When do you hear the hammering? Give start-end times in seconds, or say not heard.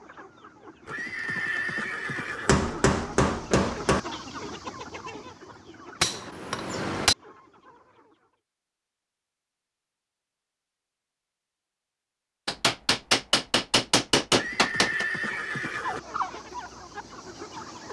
2.5-4.0, 6.0-7.2, 12.4-15.1.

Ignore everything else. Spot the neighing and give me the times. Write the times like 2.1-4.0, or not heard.
0.8-2.5, 14.3-16.0.